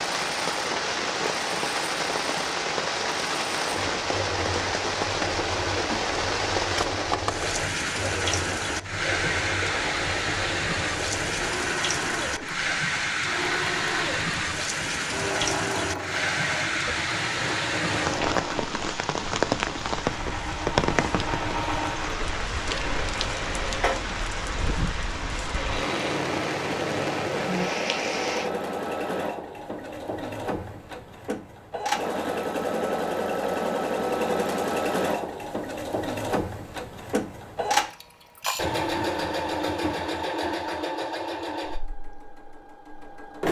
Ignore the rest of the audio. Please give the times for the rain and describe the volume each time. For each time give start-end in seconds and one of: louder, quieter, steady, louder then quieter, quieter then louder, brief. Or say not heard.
0.0-28.5 steady.